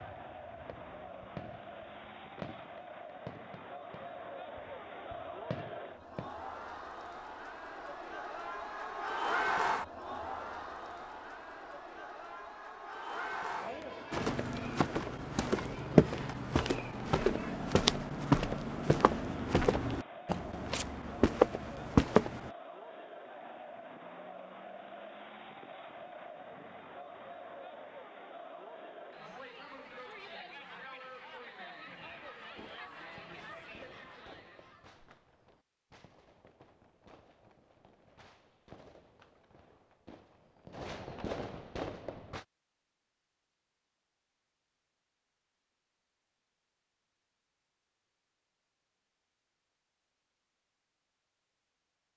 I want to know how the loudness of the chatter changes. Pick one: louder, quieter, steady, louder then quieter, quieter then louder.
louder then quieter.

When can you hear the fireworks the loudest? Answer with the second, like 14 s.
41 s.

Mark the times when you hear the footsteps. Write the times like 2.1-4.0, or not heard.
14.1-22.5.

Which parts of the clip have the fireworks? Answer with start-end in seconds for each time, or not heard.
0.0-6.3, 32.0-42.5.